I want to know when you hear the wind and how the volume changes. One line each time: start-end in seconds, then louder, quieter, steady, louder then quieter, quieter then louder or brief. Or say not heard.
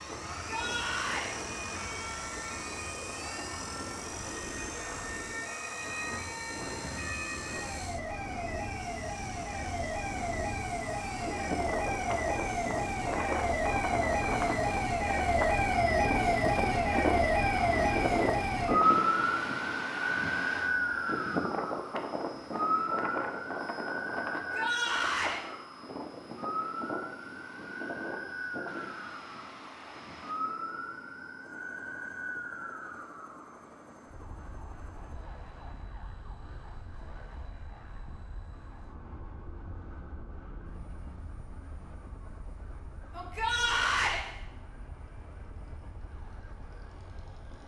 0.0-30.4 louder then quieter.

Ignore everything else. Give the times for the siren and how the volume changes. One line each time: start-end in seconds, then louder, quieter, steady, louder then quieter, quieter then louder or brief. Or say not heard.
0.0-47.6 louder then quieter.